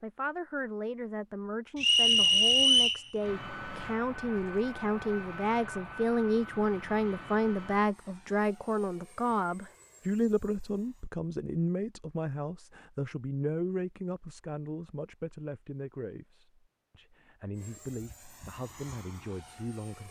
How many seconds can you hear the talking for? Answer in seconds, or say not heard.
20 s.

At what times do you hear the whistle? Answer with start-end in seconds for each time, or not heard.
1.8-3.0.